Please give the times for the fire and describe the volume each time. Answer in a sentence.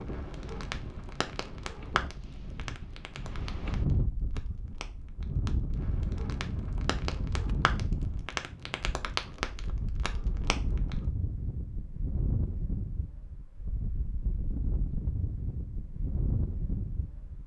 You can hear the fire from 0.0 to 10.9 s, getting quieter then louder.